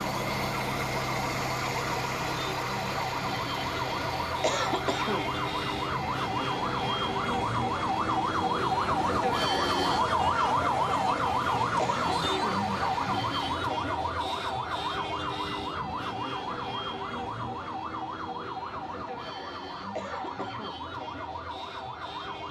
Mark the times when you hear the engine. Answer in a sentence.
You can hear the engine from 0.0 to 13.7 s.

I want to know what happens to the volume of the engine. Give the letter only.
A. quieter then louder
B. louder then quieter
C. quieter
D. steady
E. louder
C.